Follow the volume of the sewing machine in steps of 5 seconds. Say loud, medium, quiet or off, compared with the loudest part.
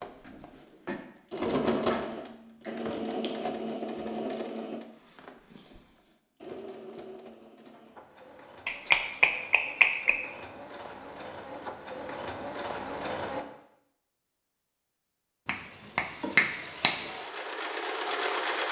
loud, quiet, medium, loud.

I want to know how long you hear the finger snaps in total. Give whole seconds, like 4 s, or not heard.
4 s.